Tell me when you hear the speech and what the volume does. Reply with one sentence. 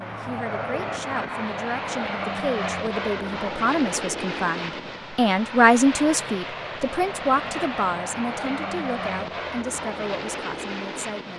The speech can be heard from 0.0 to 11.3 s, getting louder then quieter.